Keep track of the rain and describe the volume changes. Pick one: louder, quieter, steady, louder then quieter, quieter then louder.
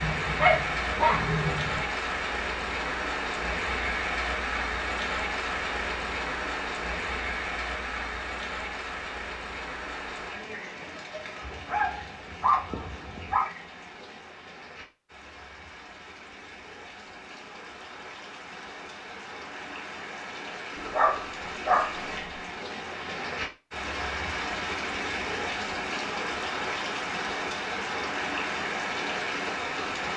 quieter then louder.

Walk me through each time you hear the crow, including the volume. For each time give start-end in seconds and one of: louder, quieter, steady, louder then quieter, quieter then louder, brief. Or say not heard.
not heard.